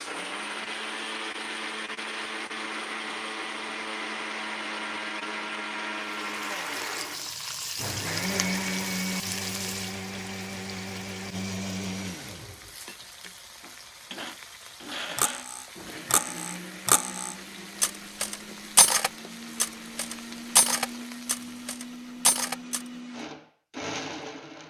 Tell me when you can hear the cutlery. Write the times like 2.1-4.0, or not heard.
15.2-22.8.